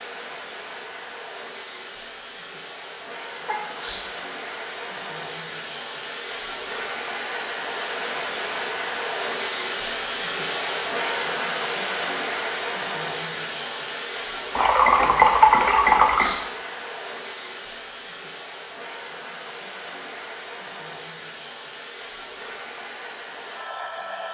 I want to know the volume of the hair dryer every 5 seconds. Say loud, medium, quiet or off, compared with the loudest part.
medium, loud, loud, medium, medium.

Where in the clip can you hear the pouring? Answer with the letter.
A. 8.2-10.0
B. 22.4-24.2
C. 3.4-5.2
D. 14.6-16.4
D.